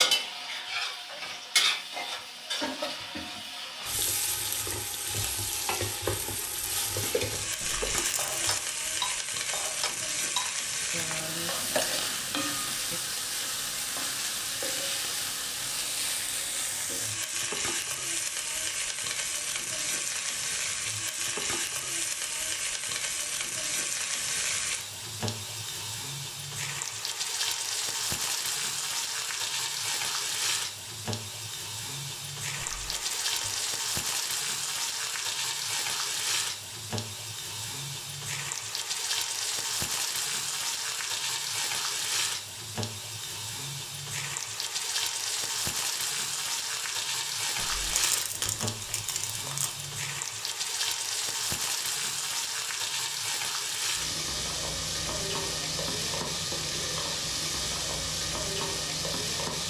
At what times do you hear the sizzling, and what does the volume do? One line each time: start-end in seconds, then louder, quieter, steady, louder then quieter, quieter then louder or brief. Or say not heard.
0.0-59.6 steady.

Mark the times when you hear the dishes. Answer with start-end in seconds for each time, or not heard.
6.8-13.0.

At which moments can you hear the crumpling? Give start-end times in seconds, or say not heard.
7.6-8.7, 32.5-33.7, 47.5-50.0.